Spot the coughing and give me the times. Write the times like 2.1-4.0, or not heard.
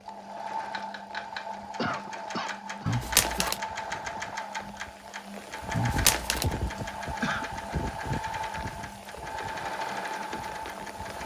1.8-3.6, 6.8-7.5.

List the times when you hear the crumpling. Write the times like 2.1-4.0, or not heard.
2.9-3.6, 5.8-6.5.